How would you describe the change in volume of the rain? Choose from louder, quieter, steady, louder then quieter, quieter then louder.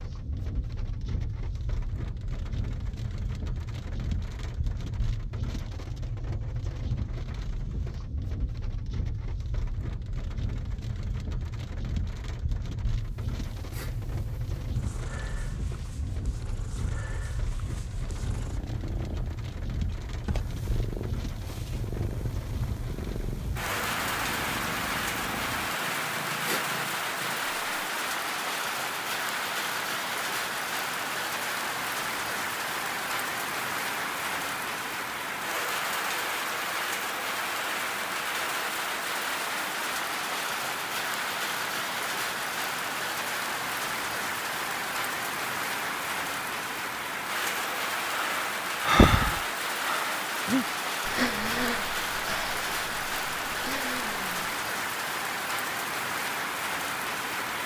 louder.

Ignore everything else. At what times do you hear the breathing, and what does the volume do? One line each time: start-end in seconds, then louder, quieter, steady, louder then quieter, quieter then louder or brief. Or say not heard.
48.1-54.4 quieter.